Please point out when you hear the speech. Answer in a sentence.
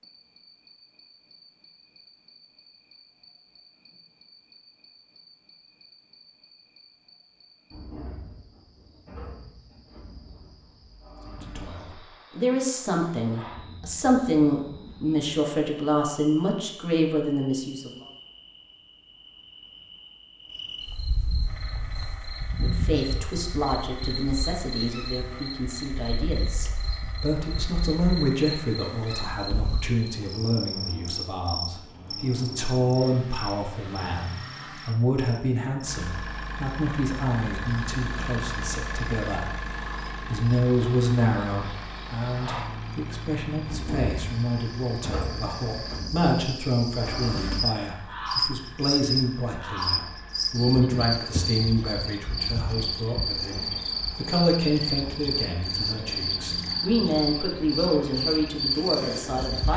You can hear the speech from 11.2 to 18.1 s and from 22.6 to 59.7 s.